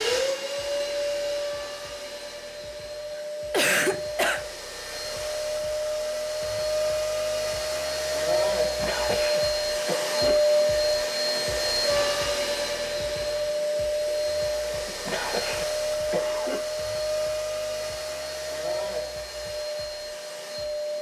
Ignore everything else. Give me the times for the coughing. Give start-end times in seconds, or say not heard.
3.1-4.5, 8.6-10.6, 14.8-16.6.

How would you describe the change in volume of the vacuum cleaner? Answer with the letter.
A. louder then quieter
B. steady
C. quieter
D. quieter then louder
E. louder
A.